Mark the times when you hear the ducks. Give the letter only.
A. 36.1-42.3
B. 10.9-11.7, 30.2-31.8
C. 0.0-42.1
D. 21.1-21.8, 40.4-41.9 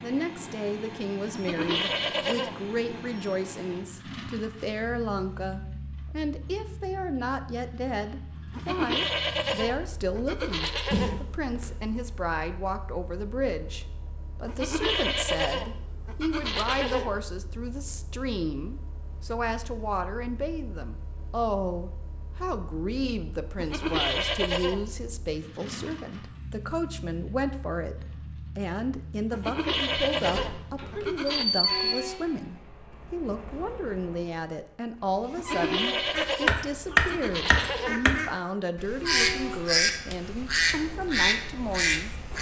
A.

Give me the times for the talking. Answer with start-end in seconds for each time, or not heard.
0.0-42.1.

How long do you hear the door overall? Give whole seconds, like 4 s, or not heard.
2 s.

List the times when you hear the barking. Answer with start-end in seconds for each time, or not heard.
not heard.